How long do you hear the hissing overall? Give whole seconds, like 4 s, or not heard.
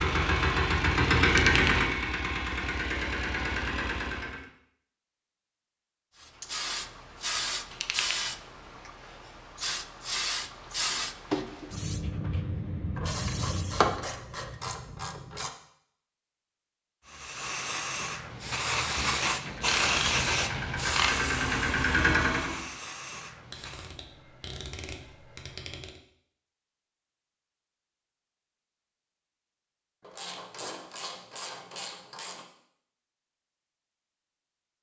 15 s.